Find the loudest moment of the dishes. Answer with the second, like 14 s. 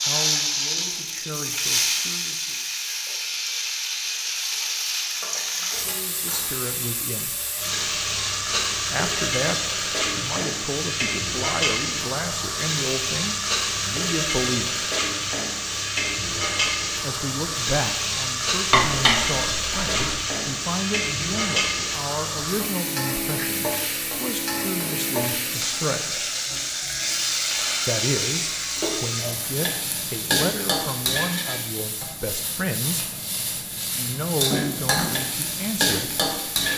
19 s.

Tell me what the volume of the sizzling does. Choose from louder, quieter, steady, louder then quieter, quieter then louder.
steady.